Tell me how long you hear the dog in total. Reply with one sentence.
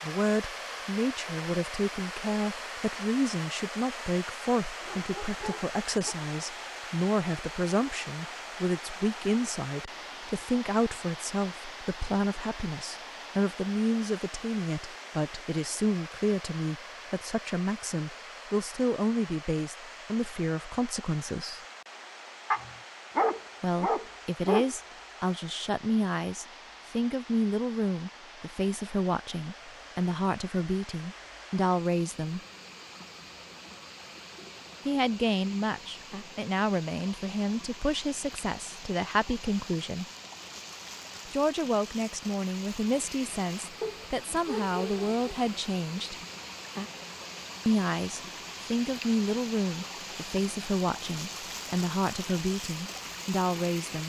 The dog can be heard for 5 seconds in total.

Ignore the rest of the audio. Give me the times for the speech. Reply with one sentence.
You can hear the speech from 0.0 to 21.6 s, from 23.6 to 32.4 s, from 34.9 to 40.0 s, from 41.2 to 46.1 s and from 47.6 to 54.0 s.